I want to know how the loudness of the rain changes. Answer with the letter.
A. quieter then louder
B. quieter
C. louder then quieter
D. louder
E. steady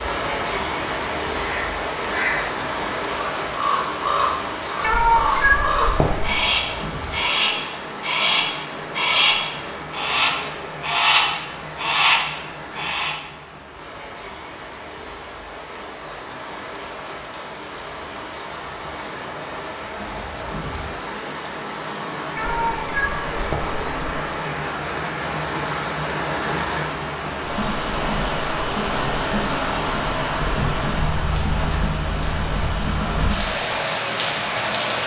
A.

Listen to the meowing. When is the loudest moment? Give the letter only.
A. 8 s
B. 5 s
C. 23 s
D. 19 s
B.